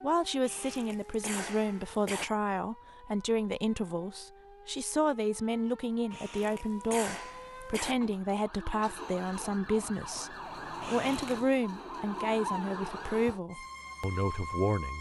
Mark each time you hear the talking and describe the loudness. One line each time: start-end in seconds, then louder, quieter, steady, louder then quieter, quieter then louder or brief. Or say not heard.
0.0-14.9 steady.